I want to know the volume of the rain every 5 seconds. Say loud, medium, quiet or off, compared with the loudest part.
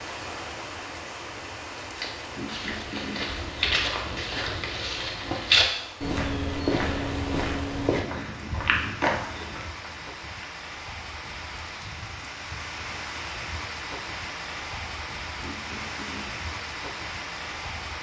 loud, medium, loud, loud.